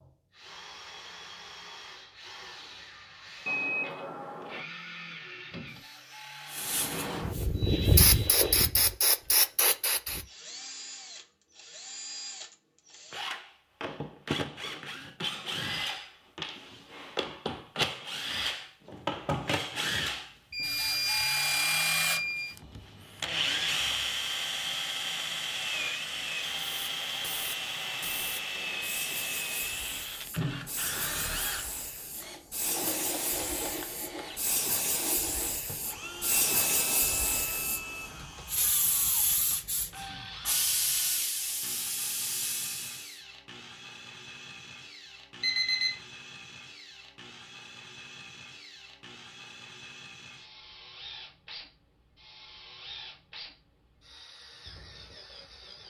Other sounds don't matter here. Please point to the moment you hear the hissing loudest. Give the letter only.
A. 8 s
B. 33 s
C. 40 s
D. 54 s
A.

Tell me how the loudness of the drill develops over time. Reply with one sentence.
The loudness of the drill goes up, then down.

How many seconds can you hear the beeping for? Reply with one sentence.
You can hear the beeping for 4 seconds altogether.